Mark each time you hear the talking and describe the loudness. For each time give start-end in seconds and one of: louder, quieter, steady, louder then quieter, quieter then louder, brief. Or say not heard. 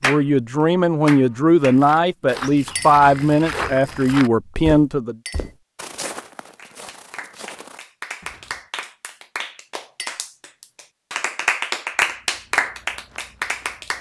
0.0-5.2 steady.